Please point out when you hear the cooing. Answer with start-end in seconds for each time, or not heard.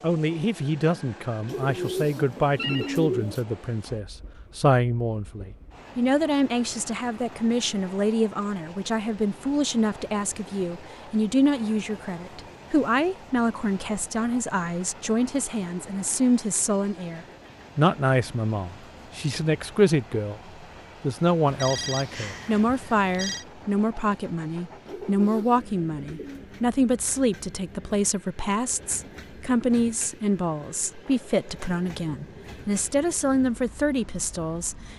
1.4-3.5, 24.9-26.4.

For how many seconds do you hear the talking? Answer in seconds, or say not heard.
34 s.